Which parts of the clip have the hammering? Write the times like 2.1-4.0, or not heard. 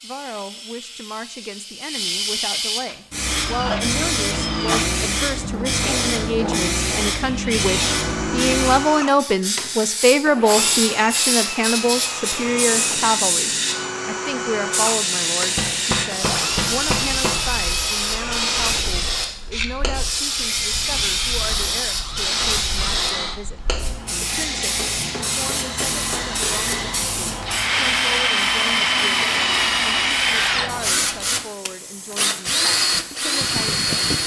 5.5-7.2, 15.6-17.4, 24.8-26.8.